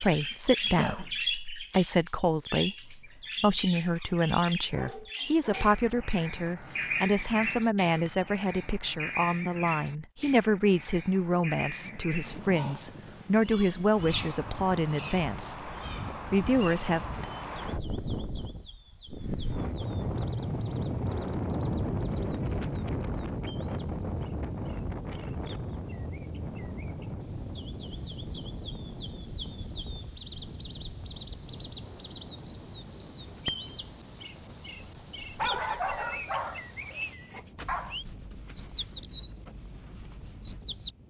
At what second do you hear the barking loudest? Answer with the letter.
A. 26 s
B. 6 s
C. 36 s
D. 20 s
C.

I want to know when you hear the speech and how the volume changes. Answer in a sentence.
You can hear the speech from 0.0 to 15.7 s, at a steady volume; and briefly from 16.3 to 17.2 s.